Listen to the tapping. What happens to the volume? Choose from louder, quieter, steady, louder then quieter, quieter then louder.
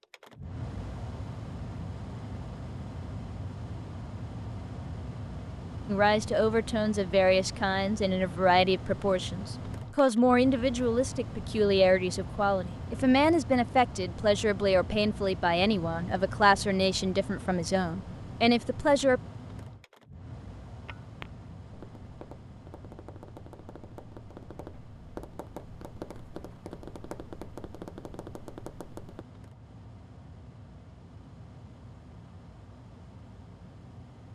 louder.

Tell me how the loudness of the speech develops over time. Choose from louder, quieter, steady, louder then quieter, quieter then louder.
steady.